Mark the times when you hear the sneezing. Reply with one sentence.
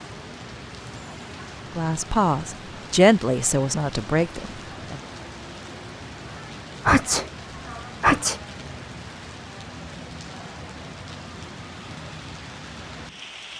You can hear the sneezing from 6.8 to 8.4 s.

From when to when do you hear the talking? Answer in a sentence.
The talking can be heard from 1.8 to 5.0 s.